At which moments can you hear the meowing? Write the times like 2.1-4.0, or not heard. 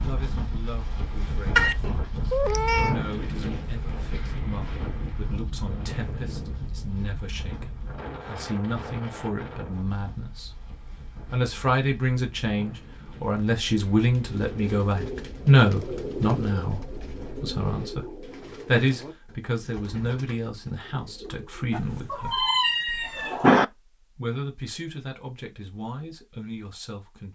1.6-3.0, 21.7-23.6.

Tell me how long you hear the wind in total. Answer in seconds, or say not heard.
18 s.